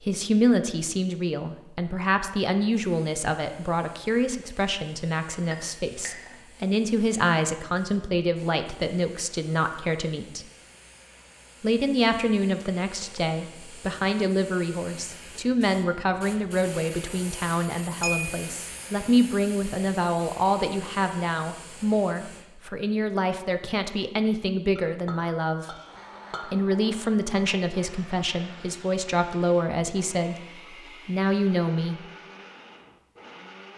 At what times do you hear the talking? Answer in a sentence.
The talking can be heard from 0.0 to 10.4 s, from 11.6 to 25.8 s and from 26.4 to 32.0 s.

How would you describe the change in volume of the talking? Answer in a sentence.
The volume of the talking stays about the same.